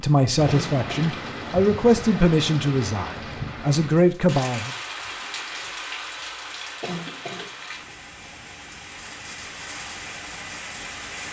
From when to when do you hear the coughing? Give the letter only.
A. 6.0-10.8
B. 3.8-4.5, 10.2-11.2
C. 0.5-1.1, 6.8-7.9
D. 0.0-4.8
C.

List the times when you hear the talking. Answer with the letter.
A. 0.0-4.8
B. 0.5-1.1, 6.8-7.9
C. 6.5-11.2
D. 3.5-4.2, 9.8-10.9
A.